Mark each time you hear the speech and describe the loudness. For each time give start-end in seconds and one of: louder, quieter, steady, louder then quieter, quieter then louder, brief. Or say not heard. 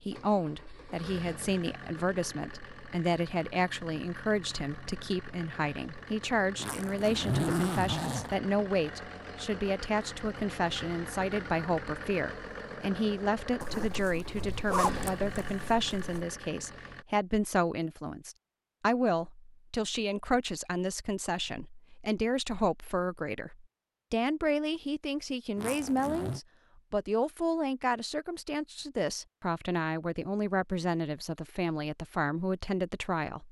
0.1-33.4 steady.